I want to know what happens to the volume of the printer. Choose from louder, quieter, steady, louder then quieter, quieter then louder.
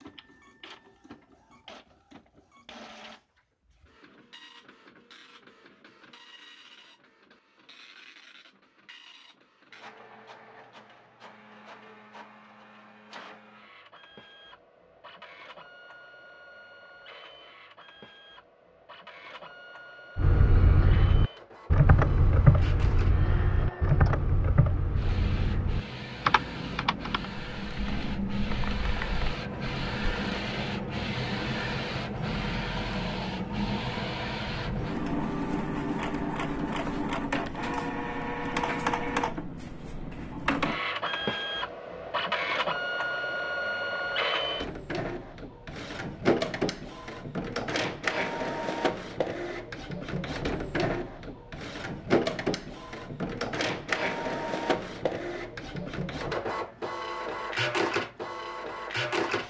louder.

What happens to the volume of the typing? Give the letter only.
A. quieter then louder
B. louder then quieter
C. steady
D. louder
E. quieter
E.